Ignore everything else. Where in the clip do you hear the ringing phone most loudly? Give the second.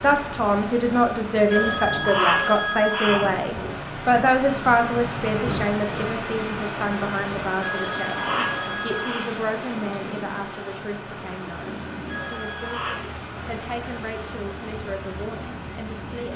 2 s.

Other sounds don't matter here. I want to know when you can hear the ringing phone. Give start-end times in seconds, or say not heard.
1.5-3.3, 7.6-9.3, 12.1-13.1.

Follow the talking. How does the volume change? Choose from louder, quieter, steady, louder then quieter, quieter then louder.
quieter.